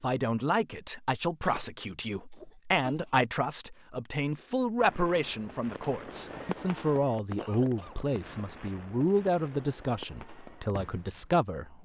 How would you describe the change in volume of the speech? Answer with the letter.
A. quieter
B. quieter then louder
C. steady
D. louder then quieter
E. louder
C.